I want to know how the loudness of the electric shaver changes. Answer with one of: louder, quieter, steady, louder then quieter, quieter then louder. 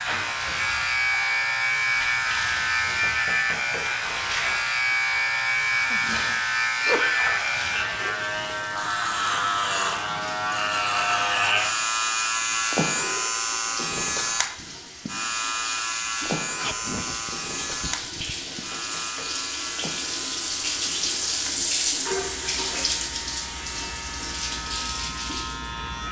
quieter.